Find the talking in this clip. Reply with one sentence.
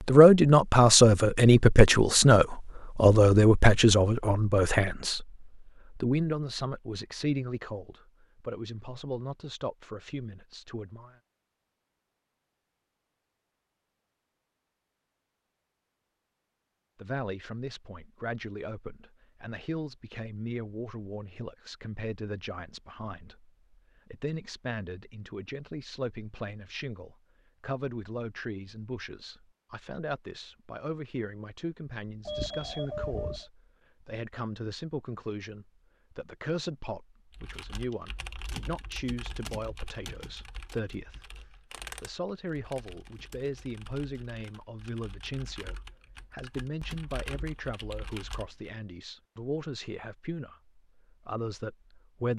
The talking can be heard from 0.1 to 11.2 s and from 16.9 to 52.3 s.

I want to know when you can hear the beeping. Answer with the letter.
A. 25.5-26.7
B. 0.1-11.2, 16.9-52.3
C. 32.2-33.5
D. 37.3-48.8
C.